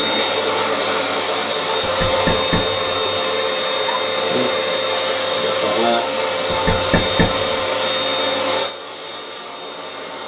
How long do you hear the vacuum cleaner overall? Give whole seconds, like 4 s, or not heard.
10 s.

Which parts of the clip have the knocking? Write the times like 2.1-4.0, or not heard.
1.8-3.2, 6.5-7.6.